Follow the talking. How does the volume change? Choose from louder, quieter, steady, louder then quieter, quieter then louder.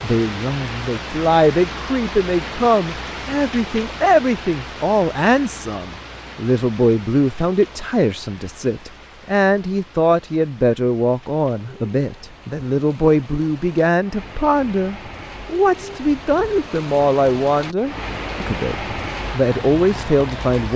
steady.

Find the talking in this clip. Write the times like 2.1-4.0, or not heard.
0.0-20.7.